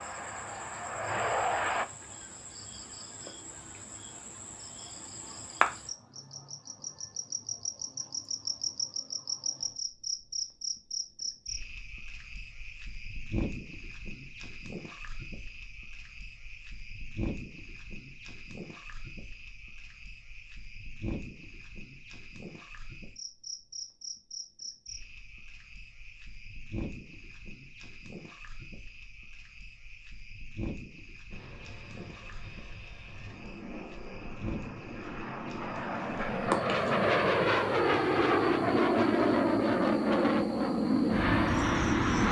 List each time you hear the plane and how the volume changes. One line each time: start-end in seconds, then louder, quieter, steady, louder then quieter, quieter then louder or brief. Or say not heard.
0.0-1.9 brief
31.3-42.2 louder.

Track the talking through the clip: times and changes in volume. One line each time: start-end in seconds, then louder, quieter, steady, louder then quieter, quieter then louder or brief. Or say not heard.
not heard.